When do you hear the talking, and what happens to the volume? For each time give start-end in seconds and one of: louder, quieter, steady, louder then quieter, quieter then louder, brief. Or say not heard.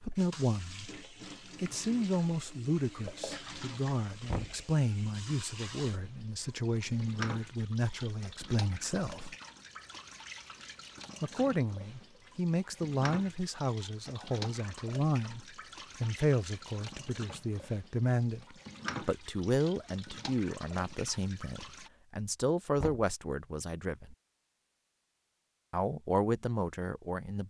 0.0-1.0 brief
1.6-9.3 steady
11.2-24.1 steady
25.7-27.4 brief.